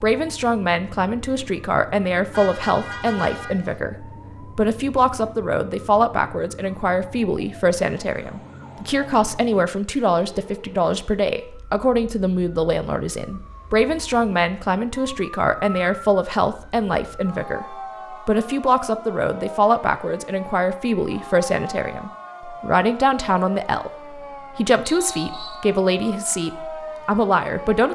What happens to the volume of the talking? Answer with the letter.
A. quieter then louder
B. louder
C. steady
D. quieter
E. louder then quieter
C.